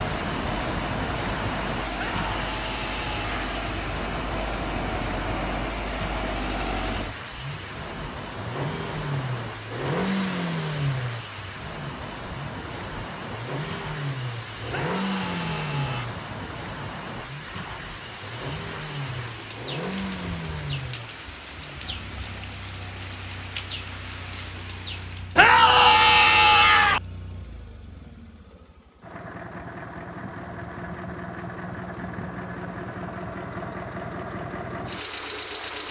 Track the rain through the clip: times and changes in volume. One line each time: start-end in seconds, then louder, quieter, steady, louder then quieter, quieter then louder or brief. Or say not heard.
0.0-25.5 quieter.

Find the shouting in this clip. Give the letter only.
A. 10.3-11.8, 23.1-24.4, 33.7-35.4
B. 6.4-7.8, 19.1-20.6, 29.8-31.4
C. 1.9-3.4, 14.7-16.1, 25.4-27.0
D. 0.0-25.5
C.